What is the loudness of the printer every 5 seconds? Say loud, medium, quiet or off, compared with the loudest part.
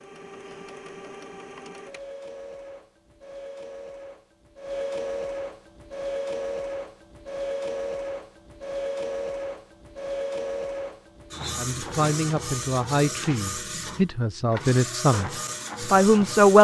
medium, loud, loud, loud.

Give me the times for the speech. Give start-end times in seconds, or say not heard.
11.6-16.5.